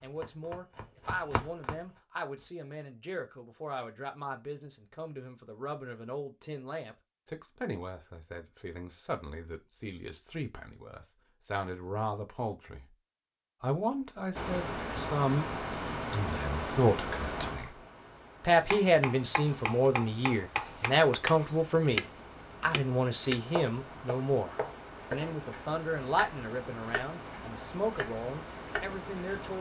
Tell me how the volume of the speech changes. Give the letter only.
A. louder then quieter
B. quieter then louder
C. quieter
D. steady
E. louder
A.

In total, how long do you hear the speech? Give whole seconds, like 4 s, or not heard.
28 s.